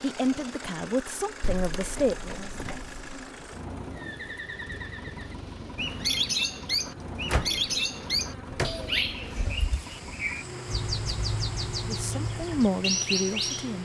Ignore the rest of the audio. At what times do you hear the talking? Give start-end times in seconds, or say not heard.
0.0-2.5, 11.8-13.8.